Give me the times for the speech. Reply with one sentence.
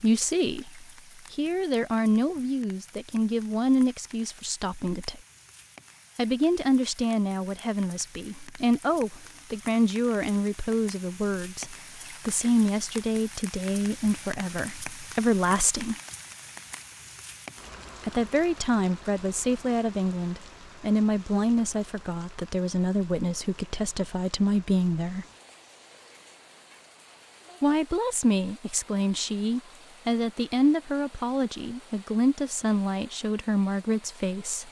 The speech can be heard from 0.0 to 5.2 s, from 6.2 to 15.9 s, from 18.0 to 25.2 s and from 27.6 to 34.6 s.